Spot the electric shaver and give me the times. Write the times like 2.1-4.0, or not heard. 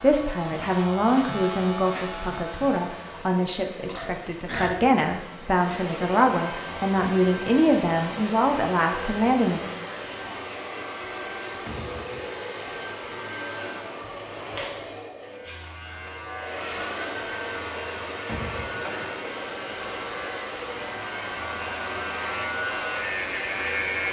0.0-3.4, 15.2-24.0.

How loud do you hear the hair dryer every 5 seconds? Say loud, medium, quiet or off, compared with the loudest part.
medium, loud, loud, loud, loud.